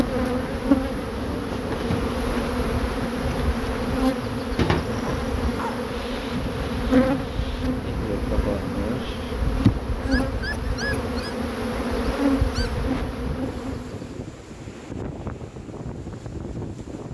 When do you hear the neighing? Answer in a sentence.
The neighing can't be heard in this clip.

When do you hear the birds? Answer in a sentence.
You can't hear the birds here.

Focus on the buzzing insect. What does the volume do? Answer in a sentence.
The volume of the buzzing insect stays about the same.